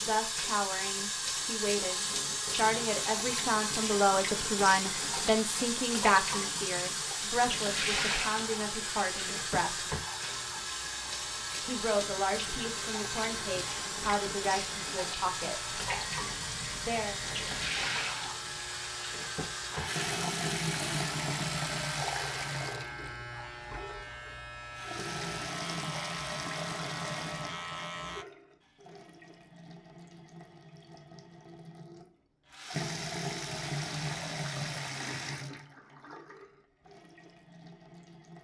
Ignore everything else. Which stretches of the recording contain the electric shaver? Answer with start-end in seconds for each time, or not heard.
8.3-28.2.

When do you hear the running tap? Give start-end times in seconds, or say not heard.
0.0-38.3.